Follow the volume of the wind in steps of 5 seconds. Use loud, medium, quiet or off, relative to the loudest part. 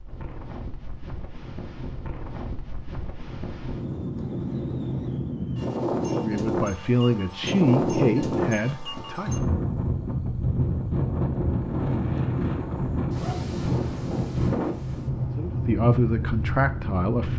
medium, loud, loud, loud.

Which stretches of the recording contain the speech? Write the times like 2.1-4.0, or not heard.
6.1-9.3, 15.3-17.3.